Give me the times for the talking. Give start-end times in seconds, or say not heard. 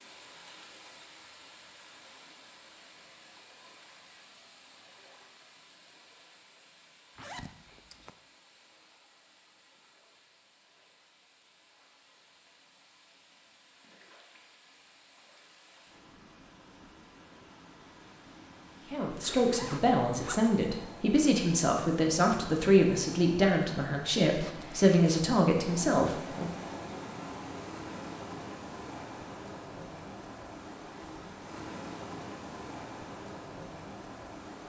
18.9-26.5.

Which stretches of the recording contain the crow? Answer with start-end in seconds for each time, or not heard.
not heard.